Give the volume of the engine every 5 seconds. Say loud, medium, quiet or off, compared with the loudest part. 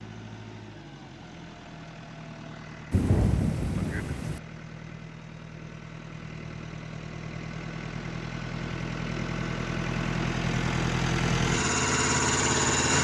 quiet, medium, loud.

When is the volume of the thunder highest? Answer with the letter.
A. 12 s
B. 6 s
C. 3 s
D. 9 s
C.